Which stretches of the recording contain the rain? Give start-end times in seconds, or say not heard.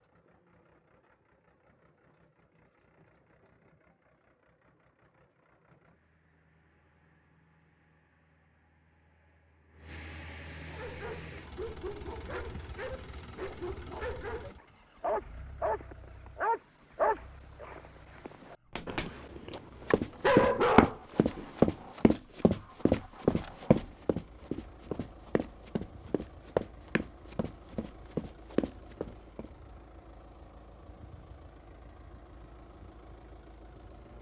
not heard.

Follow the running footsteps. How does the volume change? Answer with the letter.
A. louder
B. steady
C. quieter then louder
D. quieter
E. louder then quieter
D.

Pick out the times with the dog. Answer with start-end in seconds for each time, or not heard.
10.7-21.9.